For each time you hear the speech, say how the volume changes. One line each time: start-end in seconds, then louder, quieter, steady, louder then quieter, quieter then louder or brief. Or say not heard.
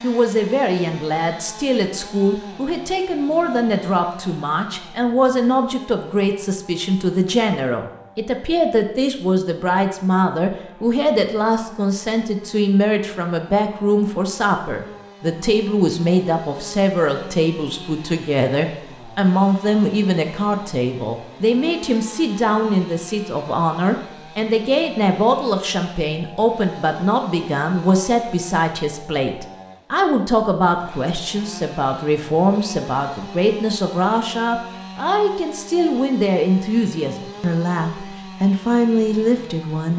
0.0-39.9 steady.